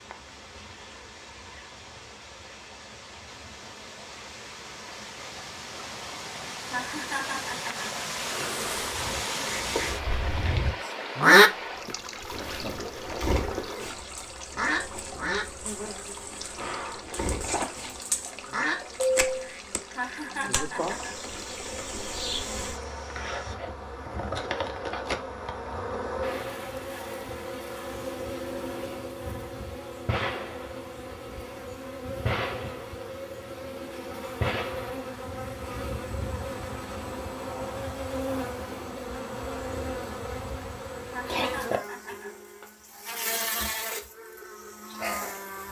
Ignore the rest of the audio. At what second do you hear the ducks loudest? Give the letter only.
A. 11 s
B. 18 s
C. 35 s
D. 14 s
A.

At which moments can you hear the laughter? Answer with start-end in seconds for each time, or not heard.
6.7-7.9, 19.9-21.1, 41.0-42.3.